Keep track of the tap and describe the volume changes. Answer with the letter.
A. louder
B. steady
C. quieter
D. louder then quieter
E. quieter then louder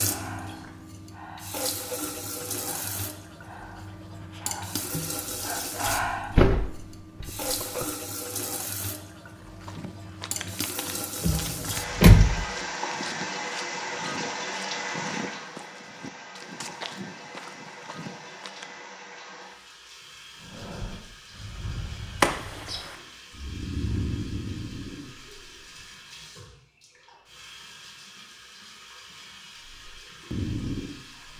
C.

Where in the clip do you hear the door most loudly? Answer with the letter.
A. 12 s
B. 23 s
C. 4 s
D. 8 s
A.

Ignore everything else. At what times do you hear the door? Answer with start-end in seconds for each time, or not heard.
5.8-7.8, 11.2-12.4, 22.2-22.9.